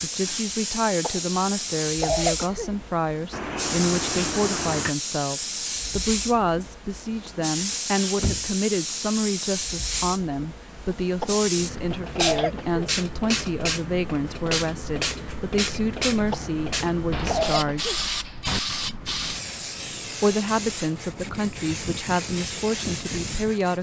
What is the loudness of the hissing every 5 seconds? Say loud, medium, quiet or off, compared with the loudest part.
loud, loud, loud, loud, medium.